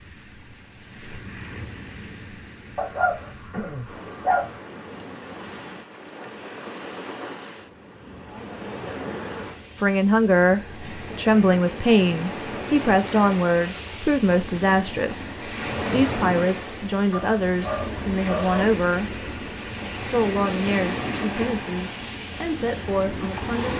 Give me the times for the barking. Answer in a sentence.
You can hear the barking from 2.8 to 4.5 s and from 17.1 to 18.6 s.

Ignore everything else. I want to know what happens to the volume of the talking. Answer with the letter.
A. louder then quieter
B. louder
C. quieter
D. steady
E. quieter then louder
C.